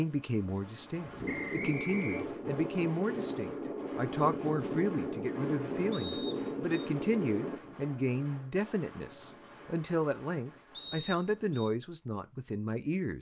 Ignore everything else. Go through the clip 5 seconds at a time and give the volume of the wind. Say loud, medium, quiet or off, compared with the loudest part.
loud, loud, off.